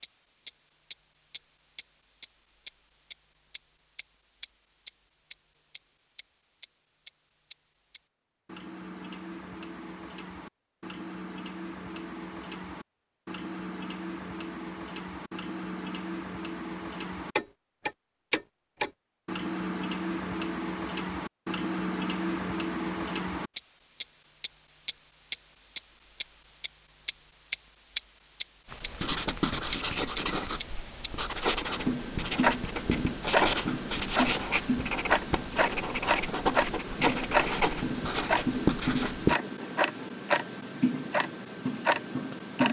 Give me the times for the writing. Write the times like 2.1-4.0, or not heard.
28.6-39.4.